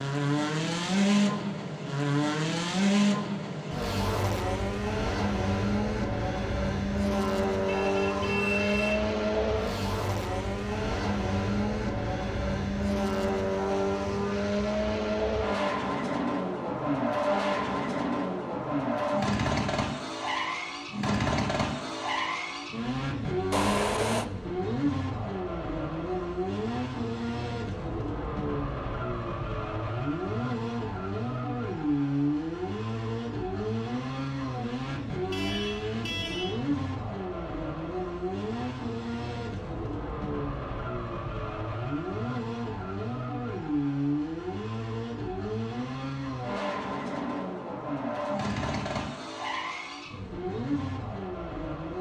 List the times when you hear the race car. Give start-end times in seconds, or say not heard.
0.0-51.9.